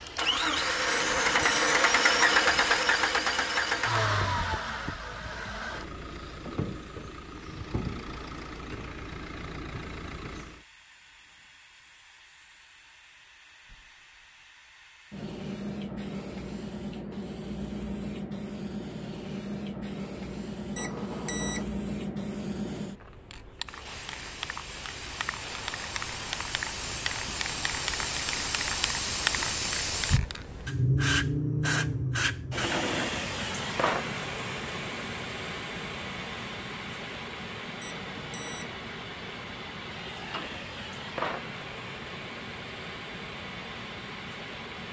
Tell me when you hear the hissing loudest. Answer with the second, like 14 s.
31 s.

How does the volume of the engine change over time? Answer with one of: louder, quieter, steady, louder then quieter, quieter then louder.
quieter.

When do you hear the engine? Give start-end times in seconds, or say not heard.
0.0-10.7.